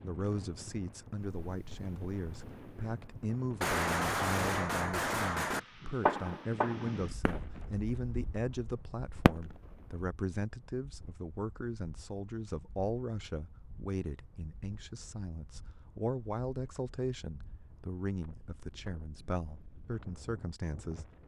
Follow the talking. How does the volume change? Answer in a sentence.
The volume of the talking stays about the same.